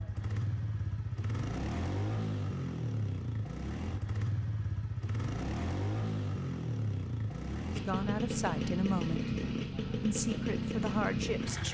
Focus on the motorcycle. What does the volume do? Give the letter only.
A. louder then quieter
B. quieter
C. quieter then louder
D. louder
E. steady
E.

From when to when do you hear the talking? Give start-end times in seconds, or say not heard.
7.7-9.3, 10.0-11.6.